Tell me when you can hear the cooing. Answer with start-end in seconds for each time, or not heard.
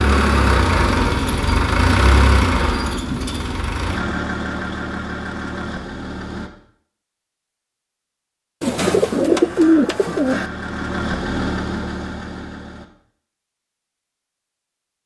8.6-10.5.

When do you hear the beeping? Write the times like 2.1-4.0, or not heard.
not heard.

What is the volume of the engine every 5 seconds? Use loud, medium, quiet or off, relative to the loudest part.
loud, medium, medium.